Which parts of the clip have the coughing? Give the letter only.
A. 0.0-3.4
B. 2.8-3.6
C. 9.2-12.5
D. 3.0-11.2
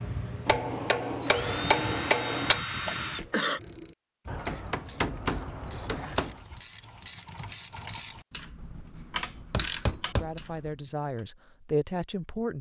B.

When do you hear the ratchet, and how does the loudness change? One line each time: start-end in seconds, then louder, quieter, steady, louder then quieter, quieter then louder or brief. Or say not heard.
3.0-11.2 louder.